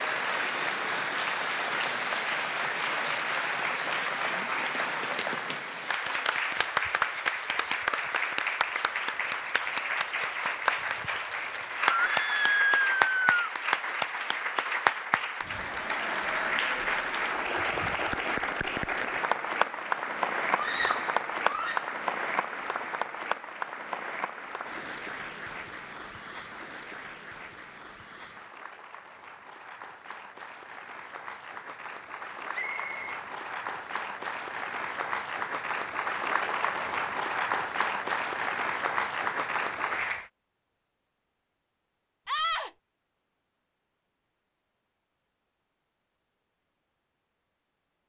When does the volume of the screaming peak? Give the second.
13 s.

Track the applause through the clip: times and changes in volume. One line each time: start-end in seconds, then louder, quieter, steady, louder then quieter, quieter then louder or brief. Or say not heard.
0.0-40.3 quieter then louder.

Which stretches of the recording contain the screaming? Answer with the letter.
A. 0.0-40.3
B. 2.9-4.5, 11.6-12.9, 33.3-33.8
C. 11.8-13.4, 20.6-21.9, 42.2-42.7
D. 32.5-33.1
C.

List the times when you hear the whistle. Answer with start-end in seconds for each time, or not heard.
32.5-33.1.